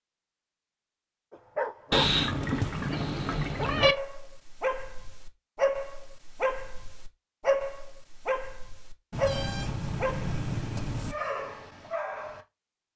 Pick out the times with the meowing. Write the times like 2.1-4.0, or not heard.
1.9-4.0, 9.1-11.2.